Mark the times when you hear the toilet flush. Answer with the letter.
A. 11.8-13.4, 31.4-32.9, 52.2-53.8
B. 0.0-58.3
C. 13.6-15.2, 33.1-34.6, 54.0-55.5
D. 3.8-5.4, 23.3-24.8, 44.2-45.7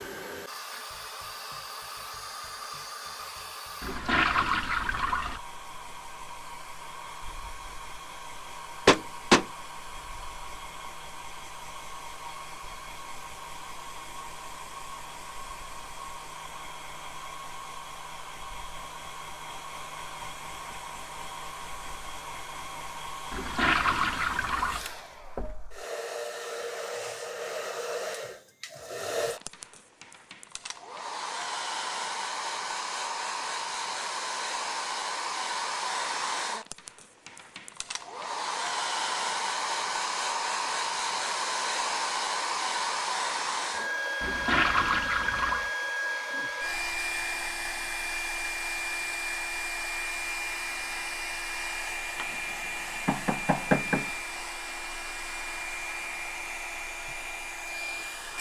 D.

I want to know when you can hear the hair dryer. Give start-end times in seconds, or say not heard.
0.0-58.3.